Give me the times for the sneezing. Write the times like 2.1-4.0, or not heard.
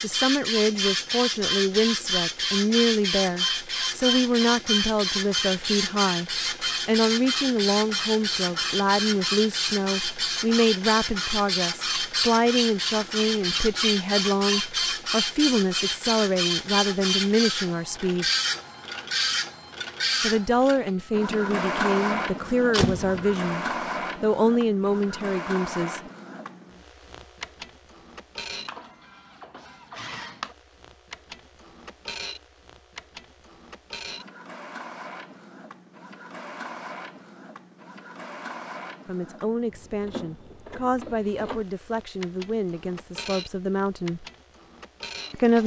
not heard.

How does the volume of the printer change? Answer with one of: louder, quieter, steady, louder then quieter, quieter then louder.
quieter.